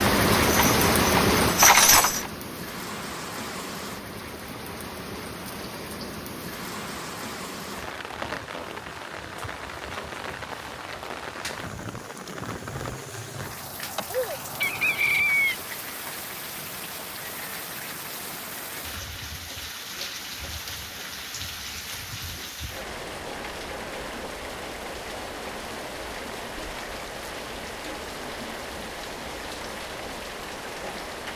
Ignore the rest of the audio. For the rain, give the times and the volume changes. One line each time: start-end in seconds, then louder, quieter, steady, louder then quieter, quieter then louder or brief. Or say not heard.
0.0-31.3 quieter.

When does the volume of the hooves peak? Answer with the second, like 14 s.
2 s.